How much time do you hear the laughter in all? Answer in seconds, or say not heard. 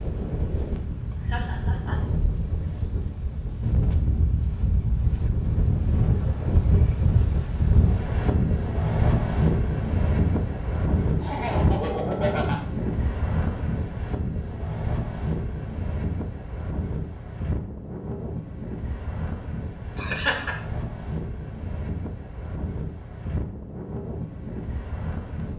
3 s.